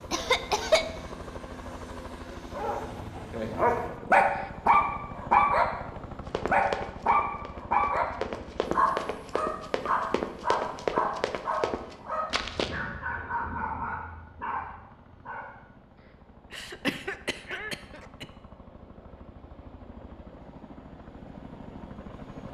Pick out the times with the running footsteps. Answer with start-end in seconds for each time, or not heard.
6.2-12.8.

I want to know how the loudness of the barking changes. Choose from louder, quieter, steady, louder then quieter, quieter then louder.
quieter.